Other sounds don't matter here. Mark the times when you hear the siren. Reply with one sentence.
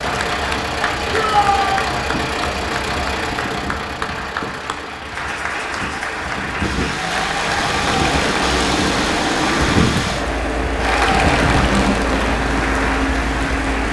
The siren can't be heard in this clip.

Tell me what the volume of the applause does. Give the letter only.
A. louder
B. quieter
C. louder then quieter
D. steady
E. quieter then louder
A.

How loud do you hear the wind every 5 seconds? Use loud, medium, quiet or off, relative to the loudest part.
medium, loud, loud.